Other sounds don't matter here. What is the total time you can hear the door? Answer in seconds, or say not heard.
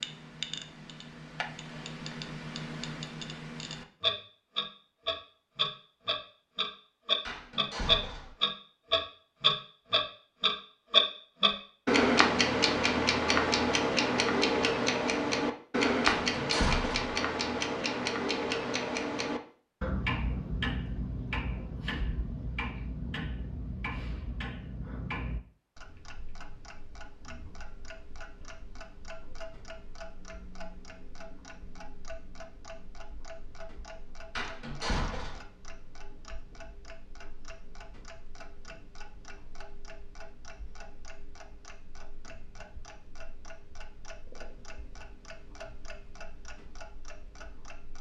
3 s.